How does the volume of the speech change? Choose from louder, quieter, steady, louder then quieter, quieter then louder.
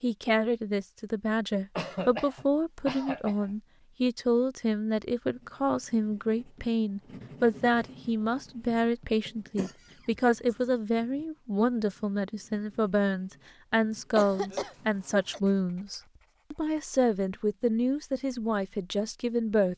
steady.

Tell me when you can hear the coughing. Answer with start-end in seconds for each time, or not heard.
1.8-3.5, 9.2-10.6, 14.2-15.4.